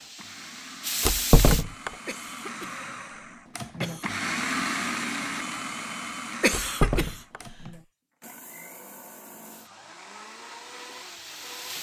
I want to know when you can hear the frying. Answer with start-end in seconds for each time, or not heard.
0.0-1.6, 9.4-11.7.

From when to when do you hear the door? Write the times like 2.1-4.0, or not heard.
1.0-1.9, 6.5-7.4.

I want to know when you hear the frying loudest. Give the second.
1 s.